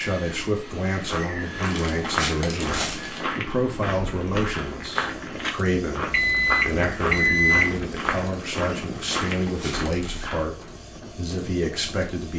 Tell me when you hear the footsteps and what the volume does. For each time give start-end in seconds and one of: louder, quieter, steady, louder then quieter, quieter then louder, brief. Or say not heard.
0.9-10.1 steady.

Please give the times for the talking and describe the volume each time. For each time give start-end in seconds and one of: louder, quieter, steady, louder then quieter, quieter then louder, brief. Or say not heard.
0.0-12.3 steady.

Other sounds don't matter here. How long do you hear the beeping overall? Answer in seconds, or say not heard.
2 s.